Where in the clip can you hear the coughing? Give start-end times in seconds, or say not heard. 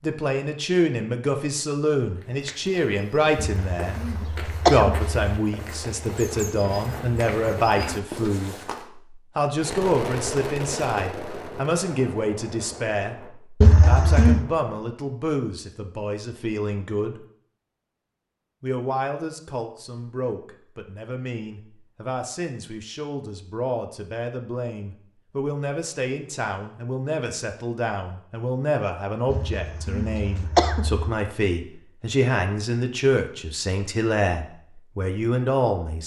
3.4-5.2, 13.6-14.4, 29.3-31.1.